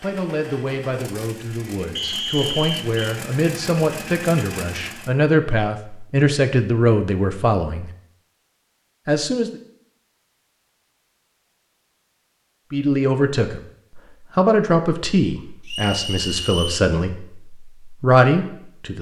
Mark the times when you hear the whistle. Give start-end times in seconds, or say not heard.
1.9-3.0, 15.7-16.9.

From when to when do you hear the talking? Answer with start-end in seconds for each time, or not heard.
0.0-7.9, 9.1-9.6, 12.7-18.9.